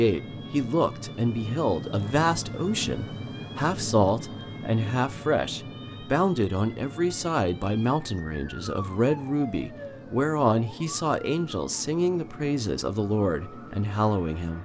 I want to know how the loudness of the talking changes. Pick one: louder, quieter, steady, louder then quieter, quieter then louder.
steady.